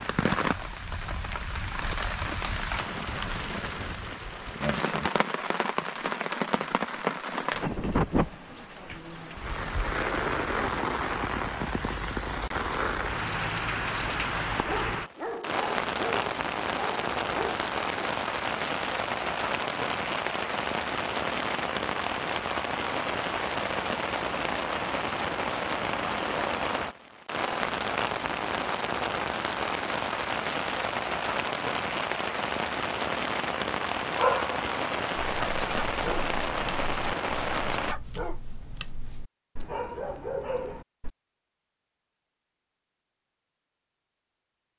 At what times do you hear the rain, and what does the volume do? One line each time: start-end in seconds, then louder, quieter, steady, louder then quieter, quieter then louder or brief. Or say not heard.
0.0-38.0 steady.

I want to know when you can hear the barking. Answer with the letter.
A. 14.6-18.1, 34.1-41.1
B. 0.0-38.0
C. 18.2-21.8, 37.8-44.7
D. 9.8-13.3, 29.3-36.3
A.